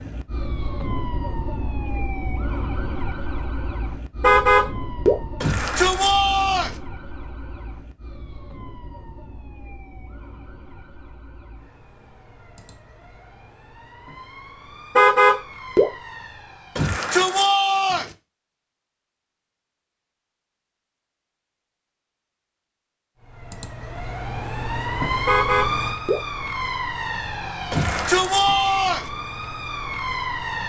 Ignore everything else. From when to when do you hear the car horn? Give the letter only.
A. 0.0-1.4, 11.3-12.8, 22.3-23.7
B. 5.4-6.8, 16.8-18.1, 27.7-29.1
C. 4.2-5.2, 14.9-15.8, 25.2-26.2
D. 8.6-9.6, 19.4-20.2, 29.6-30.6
C.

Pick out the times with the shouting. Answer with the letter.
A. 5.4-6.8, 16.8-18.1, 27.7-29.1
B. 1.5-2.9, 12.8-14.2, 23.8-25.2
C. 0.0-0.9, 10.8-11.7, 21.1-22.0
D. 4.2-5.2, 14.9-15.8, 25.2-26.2
A.